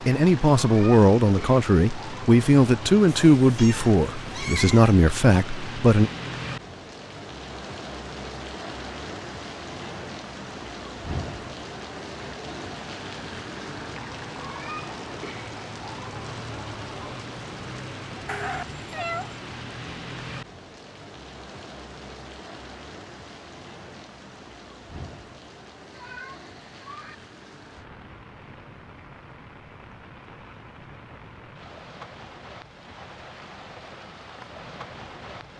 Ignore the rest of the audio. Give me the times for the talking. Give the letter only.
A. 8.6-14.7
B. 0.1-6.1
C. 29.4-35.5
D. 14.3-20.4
B.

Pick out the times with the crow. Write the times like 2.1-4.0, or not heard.
not heard.